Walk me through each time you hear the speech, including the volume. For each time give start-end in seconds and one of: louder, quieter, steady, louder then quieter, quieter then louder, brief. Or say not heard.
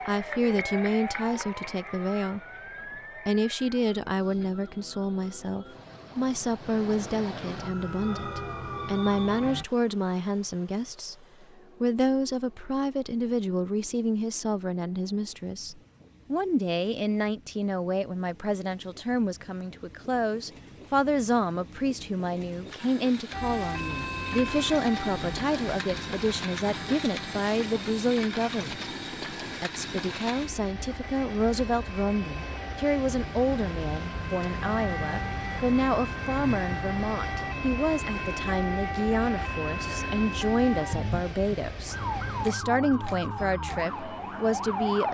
0.1-2.4 brief
3.2-11.2 steady
11.8-28.9 steady
29.6-45.0 steady.